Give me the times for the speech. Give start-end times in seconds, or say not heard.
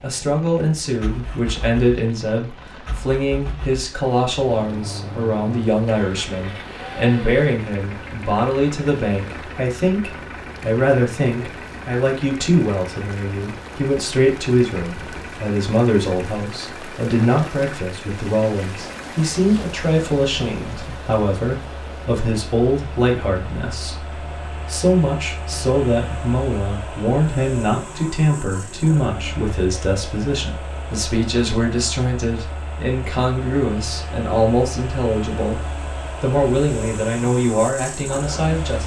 0.0-38.8.